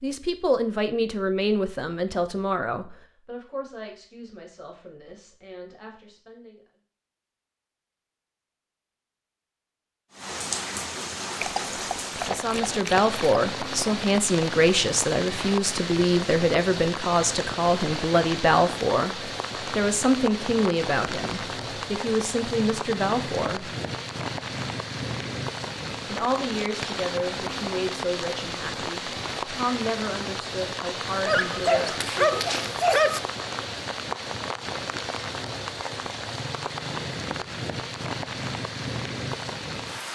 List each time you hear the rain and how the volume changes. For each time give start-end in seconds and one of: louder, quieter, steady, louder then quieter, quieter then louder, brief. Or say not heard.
10.1-40.1 steady.